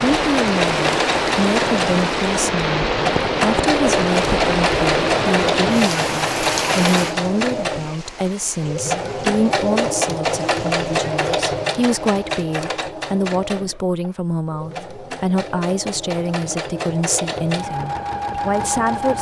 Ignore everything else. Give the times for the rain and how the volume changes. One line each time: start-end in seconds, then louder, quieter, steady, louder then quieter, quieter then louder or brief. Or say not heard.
0.0-12.2 quieter.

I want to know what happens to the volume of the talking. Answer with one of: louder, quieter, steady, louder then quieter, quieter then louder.
steady.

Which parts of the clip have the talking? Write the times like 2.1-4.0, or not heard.
0.0-19.1.